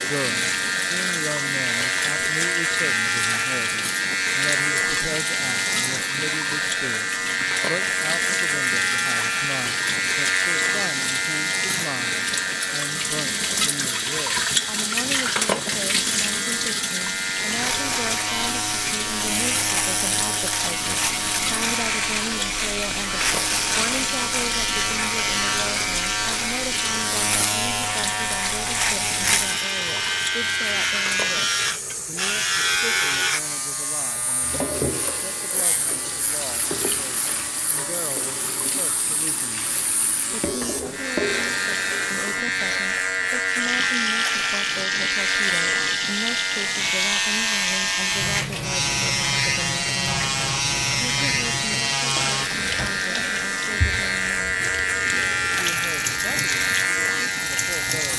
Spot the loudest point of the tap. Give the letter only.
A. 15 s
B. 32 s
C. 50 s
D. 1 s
A.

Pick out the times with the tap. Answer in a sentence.
The tap can be heard from 0.0 to 58.1 s.